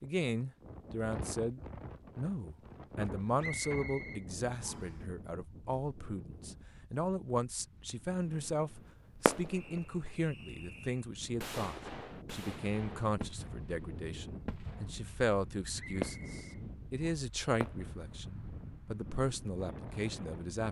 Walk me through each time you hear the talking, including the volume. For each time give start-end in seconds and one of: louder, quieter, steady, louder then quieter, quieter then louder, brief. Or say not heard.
0.0-20.6 steady.